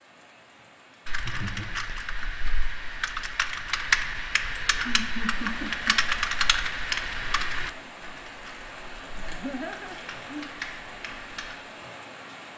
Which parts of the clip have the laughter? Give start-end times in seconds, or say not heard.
1.1-1.8, 4.7-6.0, 9.2-10.6.